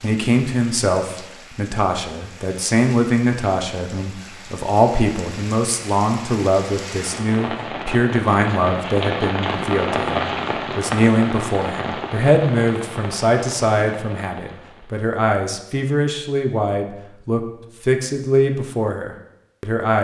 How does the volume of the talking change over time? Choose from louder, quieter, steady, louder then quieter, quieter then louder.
steady.